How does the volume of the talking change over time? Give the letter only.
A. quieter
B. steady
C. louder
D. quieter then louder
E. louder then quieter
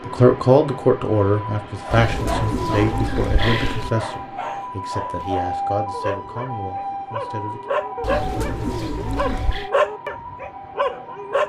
A.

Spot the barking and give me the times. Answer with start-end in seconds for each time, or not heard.
1.9-11.4.